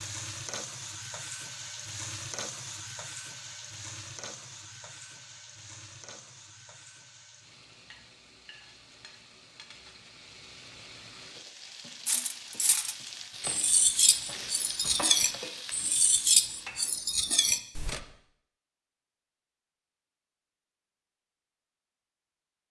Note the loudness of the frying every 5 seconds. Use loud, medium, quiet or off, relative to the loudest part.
loud, medium, loud, loud, off.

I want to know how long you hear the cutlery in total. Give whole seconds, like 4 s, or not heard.
6 s.